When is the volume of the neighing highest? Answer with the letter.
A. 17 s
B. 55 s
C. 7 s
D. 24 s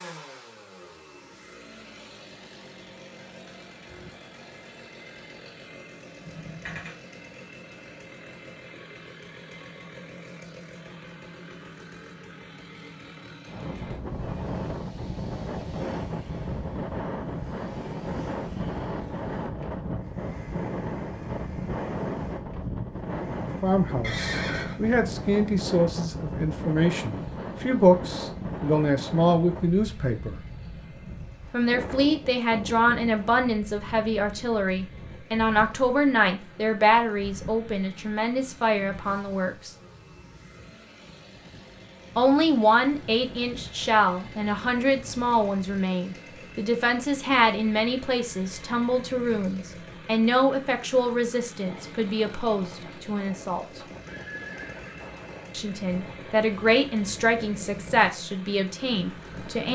D.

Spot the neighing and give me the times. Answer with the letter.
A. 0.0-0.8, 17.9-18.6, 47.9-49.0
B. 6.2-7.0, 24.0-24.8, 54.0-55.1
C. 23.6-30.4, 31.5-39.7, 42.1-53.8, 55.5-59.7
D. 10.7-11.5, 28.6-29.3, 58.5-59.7
B.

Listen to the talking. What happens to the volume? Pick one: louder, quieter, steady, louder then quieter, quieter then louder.
steady.